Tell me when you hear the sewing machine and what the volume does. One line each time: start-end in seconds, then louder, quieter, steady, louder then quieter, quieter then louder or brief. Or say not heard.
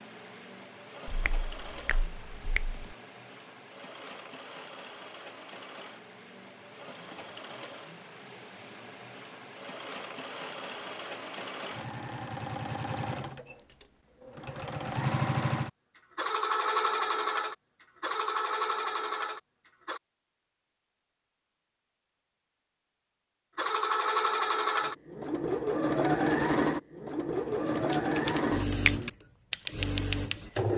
0.0-20.0 louder
23.6-30.7 quieter.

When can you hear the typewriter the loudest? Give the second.
30 s.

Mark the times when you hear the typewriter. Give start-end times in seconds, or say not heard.
27.4-30.6.